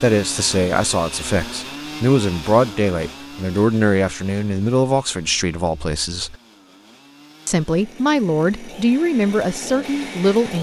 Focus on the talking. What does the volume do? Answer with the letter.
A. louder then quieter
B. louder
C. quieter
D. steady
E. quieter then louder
D.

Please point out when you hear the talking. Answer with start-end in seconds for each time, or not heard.
0.0-6.3, 7.5-10.5.